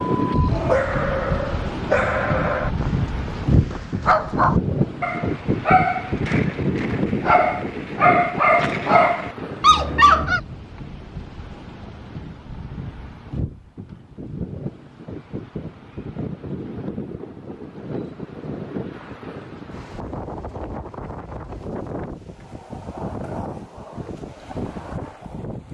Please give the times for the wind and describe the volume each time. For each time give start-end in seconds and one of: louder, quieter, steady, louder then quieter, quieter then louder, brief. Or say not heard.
0.0-25.7 quieter.